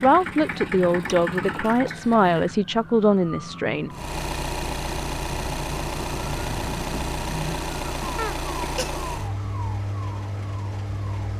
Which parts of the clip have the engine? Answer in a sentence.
The engine can be heard from 0.0 to 2.6 s and from 3.9 to 11.3 s.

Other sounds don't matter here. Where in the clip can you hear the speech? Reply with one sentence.
You can hear the speech from 0.0 to 3.9 s.